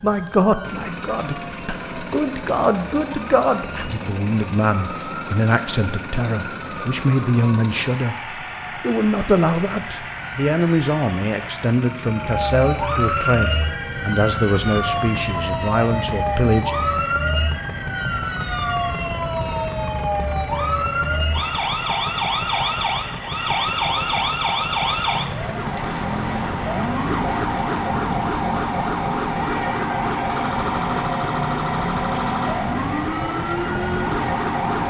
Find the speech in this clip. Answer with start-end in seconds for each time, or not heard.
0.0-16.8.